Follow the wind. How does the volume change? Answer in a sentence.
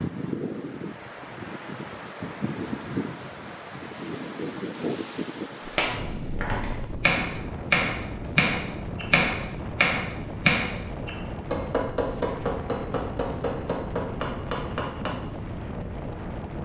The loudness of the wind stays about the same.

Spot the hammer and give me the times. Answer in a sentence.
The hammer can be heard from 5.7 to 15.1 s.